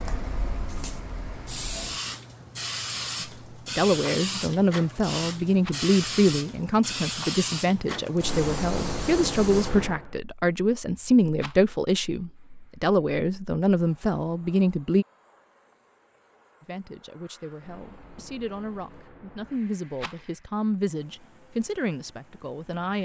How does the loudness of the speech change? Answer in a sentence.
The volume of the speech goes down.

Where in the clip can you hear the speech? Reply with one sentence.
You can hear the speech from 3.2 to 15.1 s and from 16.6 to 23.0 s.